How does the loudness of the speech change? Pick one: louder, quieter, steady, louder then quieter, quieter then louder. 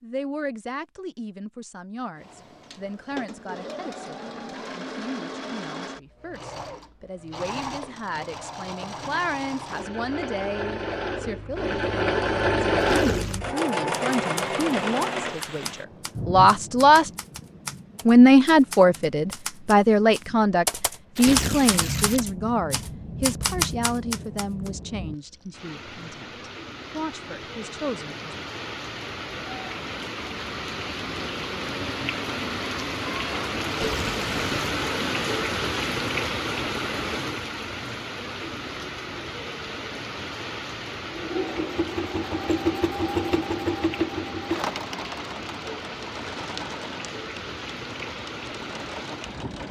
louder then quieter.